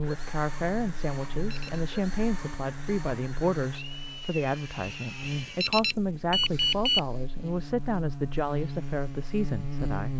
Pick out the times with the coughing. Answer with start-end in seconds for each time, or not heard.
not heard.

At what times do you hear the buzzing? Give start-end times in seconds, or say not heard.
0.0-10.1.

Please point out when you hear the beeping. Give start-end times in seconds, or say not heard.
1.4-1.8, 5.2-7.0.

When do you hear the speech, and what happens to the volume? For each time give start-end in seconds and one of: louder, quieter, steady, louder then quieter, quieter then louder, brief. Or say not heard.
0.0-10.1 steady.